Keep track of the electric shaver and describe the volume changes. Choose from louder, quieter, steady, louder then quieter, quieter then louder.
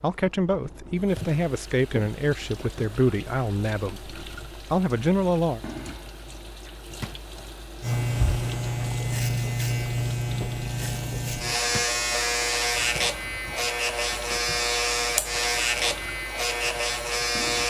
steady.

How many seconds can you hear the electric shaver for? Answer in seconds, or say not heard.
10 s.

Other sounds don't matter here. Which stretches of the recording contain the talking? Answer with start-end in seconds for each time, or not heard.
0.0-5.6.